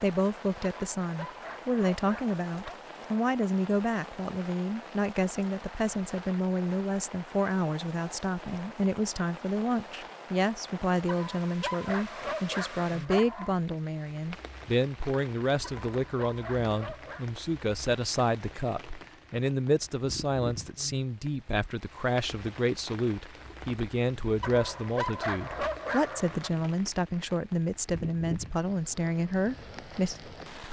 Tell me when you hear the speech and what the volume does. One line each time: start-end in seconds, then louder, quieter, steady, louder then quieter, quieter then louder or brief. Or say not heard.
0.0-30.6 steady.